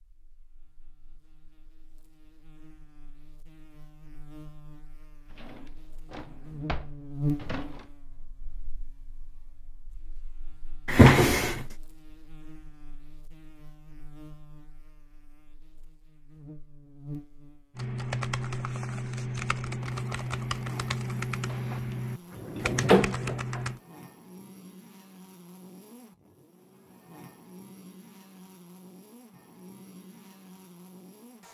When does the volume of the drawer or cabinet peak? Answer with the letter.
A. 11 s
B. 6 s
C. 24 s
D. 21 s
A.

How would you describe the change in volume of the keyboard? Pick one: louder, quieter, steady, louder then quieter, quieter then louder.
steady.